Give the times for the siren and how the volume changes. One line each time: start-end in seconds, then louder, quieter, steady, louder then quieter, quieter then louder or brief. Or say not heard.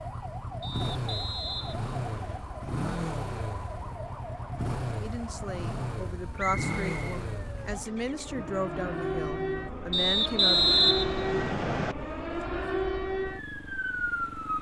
0.0-14.5 louder.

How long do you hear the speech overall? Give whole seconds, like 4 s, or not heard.
6 s.